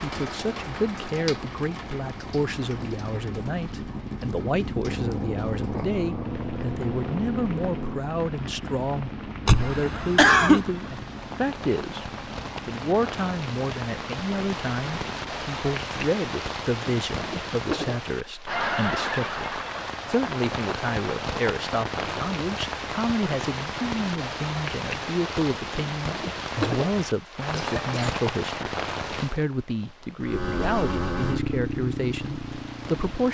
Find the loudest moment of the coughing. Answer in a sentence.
The loudest moment of the coughing is at 10 seconds.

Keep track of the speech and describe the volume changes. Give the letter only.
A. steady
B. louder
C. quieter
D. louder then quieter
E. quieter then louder
A.